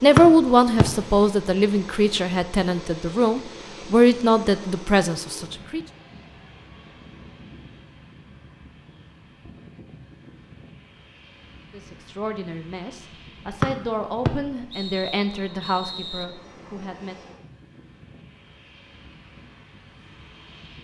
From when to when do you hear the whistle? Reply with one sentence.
The whistle can be heard from 0.1 to 0.8 s and from 13.6 to 16.2 s.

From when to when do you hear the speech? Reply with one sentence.
The speech can be heard from 0.0 to 5.8 s and from 11.7 to 17.4 s.